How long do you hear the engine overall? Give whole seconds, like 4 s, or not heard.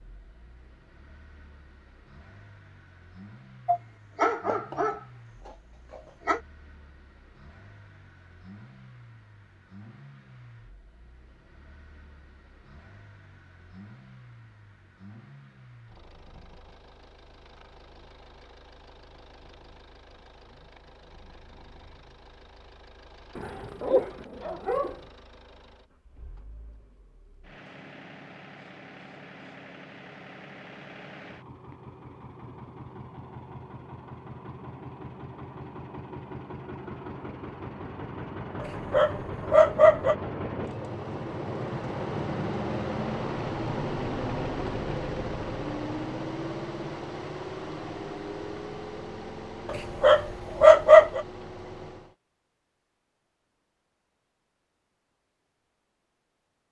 52 s.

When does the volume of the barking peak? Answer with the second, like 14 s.
51 s.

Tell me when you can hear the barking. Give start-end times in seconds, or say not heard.
3.6-6.4, 23.4-25.0, 38.6-40.1, 49.7-51.2.